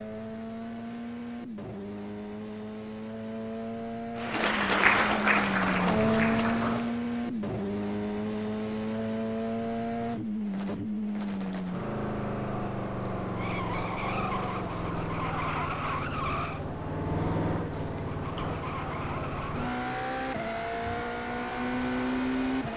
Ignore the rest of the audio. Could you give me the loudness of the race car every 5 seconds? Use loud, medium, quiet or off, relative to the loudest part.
medium, loud, loud, loud, loud.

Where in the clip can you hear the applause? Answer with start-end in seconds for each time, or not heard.
4.2-7.0.